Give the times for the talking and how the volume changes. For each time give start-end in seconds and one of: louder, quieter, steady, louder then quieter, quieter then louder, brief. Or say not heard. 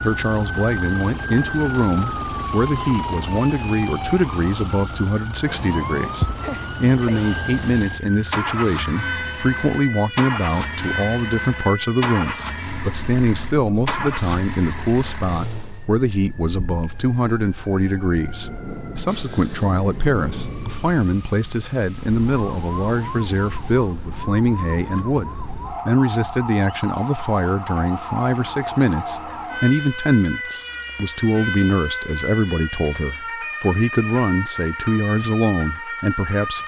0.0-36.6 steady.